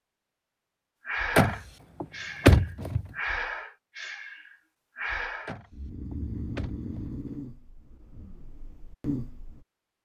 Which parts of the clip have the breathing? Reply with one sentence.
The breathing can be heard from 1.1 to 9.7 s.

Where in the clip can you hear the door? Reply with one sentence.
The door can be heard from 1.4 to 3.0 s and from 5.5 to 7.2 s.